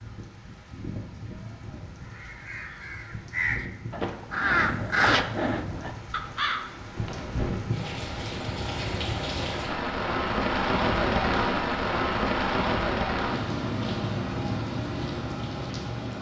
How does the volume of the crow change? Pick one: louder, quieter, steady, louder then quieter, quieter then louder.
louder then quieter.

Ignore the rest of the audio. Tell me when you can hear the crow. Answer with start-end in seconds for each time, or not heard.
2.0-7.8.